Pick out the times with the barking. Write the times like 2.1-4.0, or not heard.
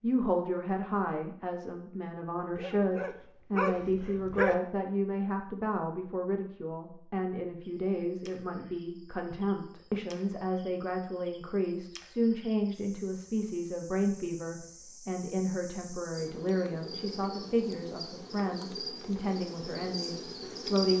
2.5-4.5.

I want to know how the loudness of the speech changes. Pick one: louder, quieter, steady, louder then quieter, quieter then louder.
steady.